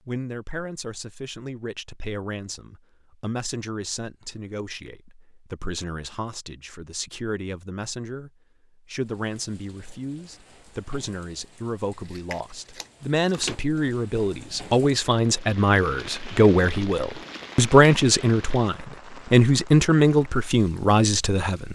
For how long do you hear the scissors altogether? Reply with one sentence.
You can hear the scissors for 2 seconds altogether.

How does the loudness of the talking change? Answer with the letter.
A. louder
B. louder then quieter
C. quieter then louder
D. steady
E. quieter
A.